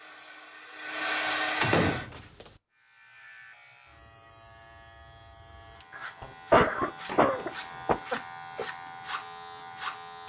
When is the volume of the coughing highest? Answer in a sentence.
The loudest moment of the coughing is at 7 seconds.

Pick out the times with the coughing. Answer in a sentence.
The coughing can be heard from 6.0 to 8.7 s.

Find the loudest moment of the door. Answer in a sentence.
The volume of the door peaks at 2 seconds.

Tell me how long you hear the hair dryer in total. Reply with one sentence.
You can hear the hair dryer for 2 seconds altogether.